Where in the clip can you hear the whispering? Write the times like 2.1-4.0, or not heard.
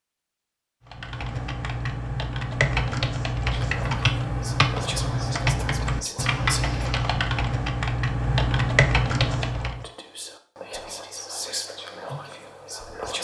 3.5-6.9, 9.4-13.2.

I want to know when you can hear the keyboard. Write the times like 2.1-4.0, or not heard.
0.8-9.8.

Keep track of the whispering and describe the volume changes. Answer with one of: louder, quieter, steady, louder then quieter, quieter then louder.
steady.